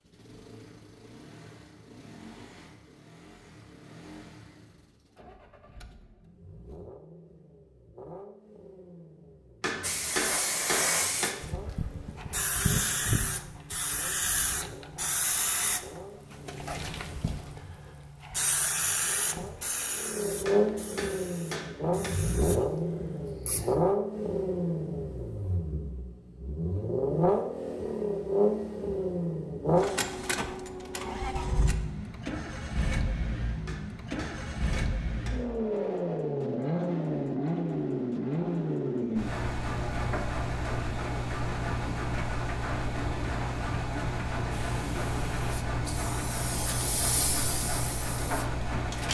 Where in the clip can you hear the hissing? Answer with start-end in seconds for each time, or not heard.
9.8-23.8, 44.5-49.0.